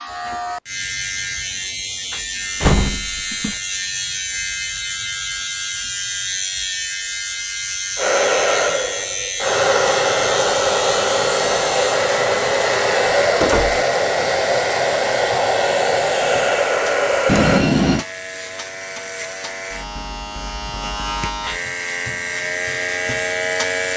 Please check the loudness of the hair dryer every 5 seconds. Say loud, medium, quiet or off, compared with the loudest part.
off, loud, loud, loud, off.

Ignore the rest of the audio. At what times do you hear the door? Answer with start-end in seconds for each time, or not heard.
2.1-3.5, 13.4-13.8, 17.2-18.1.